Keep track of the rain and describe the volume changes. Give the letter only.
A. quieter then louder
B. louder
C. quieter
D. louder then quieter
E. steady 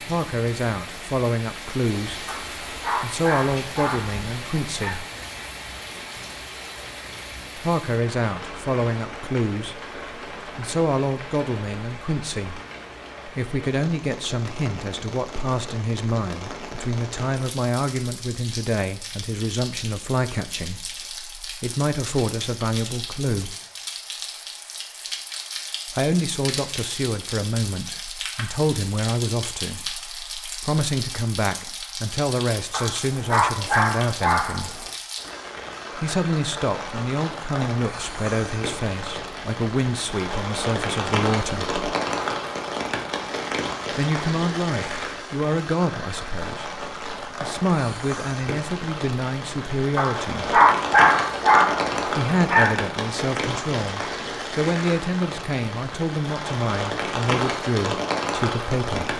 B.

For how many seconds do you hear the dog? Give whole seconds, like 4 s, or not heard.
8 s.